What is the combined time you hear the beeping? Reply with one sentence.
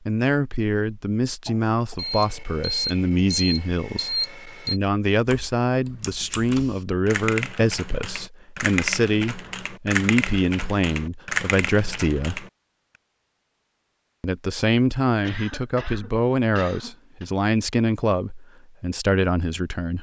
The beeping can be heard for 3 seconds in total.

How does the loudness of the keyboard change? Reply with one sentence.
The loudness of the keyboard goes up.